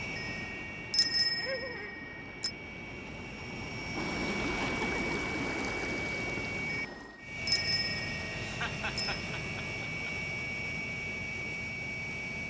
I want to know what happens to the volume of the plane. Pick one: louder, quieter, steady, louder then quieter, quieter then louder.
louder.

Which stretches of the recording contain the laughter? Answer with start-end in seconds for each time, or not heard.
1.4-1.9, 4.6-5.2, 8.4-10.1.